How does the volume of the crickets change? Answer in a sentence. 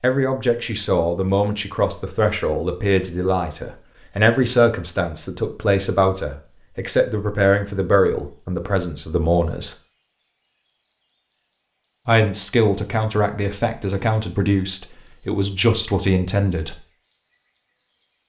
The volume of the crickets goes up.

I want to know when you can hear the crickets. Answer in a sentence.
You can hear the crickets from 0.0 to 18.2 s.